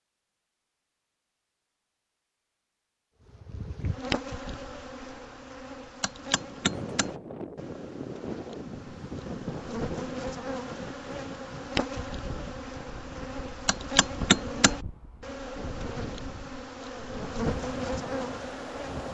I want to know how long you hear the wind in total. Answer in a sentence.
The wind can be heard for 13 seconds in total.